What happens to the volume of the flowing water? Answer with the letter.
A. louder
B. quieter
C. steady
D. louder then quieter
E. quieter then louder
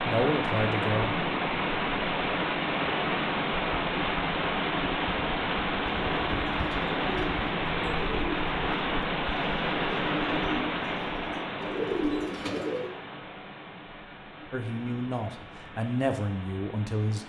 B.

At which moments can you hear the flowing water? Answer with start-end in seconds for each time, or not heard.
0.0-17.2.